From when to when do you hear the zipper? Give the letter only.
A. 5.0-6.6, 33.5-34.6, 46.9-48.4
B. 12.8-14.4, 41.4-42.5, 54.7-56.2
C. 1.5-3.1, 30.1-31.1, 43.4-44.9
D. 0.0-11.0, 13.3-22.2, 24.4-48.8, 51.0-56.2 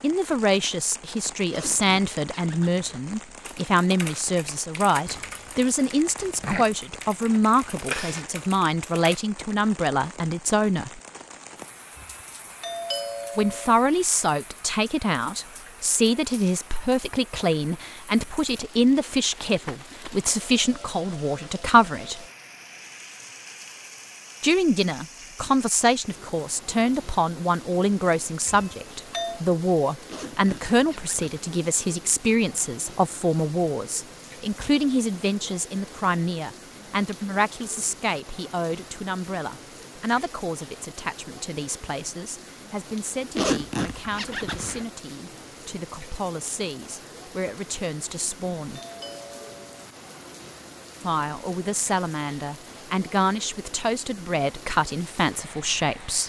C.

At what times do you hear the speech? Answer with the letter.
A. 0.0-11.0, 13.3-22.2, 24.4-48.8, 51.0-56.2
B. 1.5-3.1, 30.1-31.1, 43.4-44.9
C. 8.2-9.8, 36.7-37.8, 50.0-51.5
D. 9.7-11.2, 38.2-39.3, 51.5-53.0
A.